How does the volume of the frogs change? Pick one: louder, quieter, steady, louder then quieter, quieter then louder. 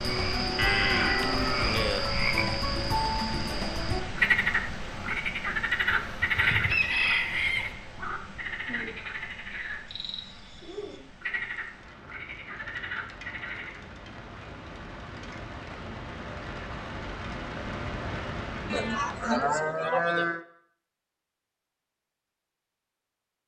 quieter.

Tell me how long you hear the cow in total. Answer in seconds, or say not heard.
3 s.